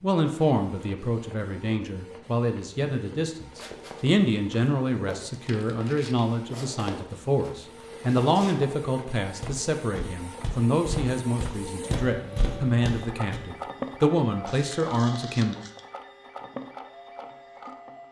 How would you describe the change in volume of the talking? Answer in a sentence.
The loudness of the talking stays about the same.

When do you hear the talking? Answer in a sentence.
You can hear the talking from 0.0 to 15.6 s.